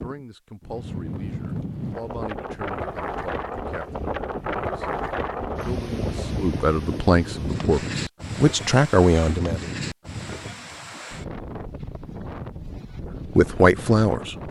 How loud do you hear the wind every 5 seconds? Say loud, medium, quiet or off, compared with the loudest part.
loud, loud, medium.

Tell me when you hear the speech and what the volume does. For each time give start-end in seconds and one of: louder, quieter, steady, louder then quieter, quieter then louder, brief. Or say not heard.
0.0-9.7 louder
13.3-14.3 brief.